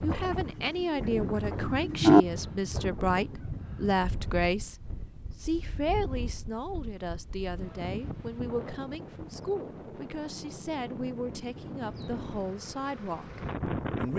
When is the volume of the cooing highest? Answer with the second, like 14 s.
2 s.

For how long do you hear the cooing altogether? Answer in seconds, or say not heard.
2 s.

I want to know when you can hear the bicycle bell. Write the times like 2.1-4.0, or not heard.
not heard.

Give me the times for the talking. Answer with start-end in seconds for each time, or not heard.
0.0-14.1.